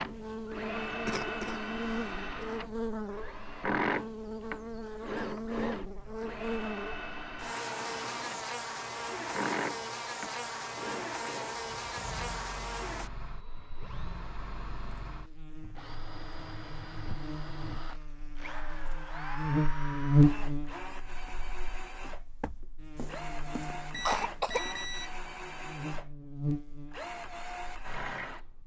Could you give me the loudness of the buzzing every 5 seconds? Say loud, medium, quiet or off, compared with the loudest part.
medium, medium, medium, medium, loud, medium.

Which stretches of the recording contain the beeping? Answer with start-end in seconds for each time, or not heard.
23.9-25.2.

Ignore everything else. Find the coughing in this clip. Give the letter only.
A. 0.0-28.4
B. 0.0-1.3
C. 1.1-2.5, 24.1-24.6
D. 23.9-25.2
C.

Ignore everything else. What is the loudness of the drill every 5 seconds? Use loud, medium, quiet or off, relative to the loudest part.
loud, loud, medium, medium, medium, medium.